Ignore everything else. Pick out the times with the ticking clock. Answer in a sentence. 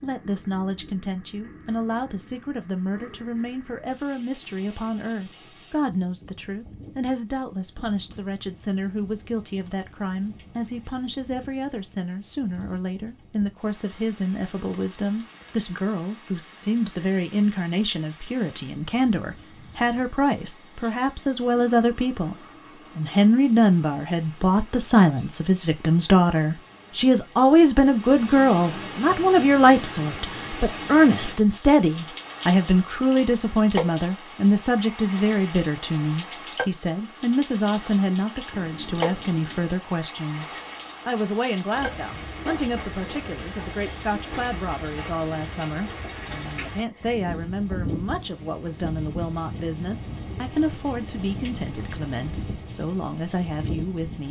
The ticking clock can't be heard in this clip.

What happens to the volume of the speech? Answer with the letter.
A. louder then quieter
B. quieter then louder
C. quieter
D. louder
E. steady
A.